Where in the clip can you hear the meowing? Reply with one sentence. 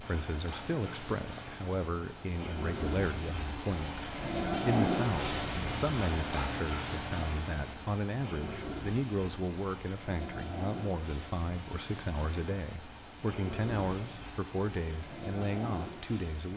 You can't hear the meowing here.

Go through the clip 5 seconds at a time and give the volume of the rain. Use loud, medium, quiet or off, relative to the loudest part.
loud, loud, medium, medium.